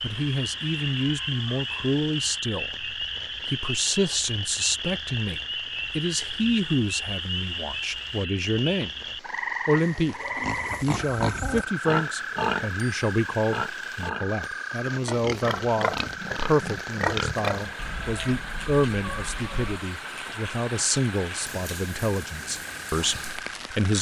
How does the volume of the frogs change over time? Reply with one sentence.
The loudness of the frogs goes down.